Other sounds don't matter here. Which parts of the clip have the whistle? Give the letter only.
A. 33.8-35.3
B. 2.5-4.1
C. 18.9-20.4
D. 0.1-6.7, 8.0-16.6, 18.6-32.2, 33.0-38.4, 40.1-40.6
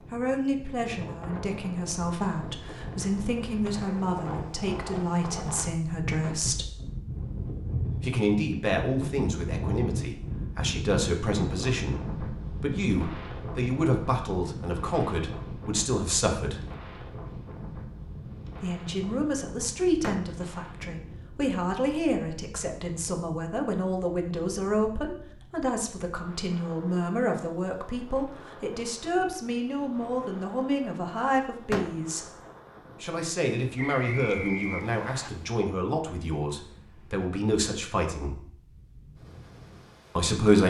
A.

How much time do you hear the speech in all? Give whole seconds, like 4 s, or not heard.
35 s.